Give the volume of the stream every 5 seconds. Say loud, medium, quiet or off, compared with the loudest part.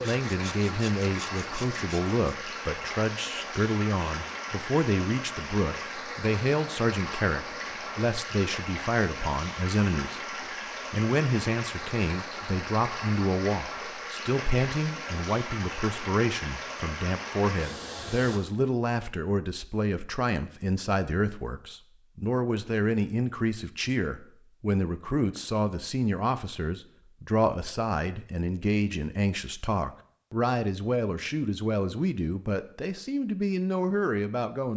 loud, loud, loud, loud, off, off, off.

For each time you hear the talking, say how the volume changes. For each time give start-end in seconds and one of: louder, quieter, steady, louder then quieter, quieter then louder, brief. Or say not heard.
0.0-10.2 steady
10.9-34.7 steady.